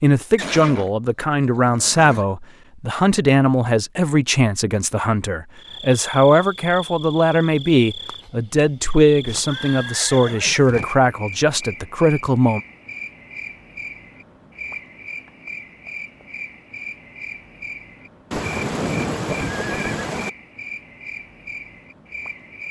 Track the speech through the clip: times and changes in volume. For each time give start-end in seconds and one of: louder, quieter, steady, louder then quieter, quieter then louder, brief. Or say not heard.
0.0-12.6 steady.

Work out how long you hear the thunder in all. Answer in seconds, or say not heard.
2 s.